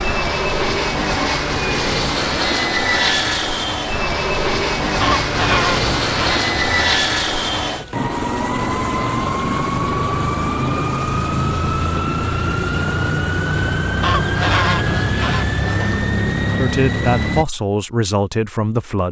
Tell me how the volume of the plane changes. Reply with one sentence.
The volume of the plane stays about the same.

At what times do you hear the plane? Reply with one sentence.
You can hear the plane from 0.0 to 17.4 s.